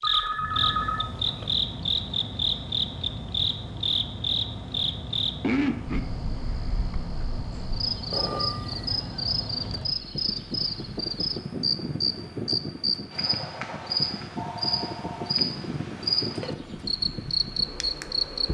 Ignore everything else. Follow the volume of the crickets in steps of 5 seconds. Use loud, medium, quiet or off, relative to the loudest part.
loud, medium, loud, loud.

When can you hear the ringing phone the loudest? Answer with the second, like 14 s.
1 s.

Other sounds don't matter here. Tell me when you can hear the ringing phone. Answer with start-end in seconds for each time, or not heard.
0.0-1.5, 8.1-9.1, 14.3-15.2.